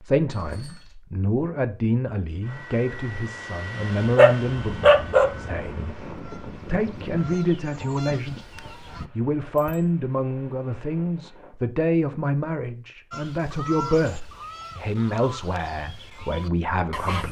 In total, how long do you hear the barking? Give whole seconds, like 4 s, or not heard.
2 s.